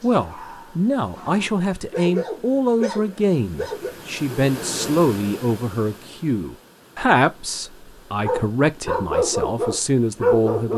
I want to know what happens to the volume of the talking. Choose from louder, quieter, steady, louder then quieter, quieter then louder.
steady.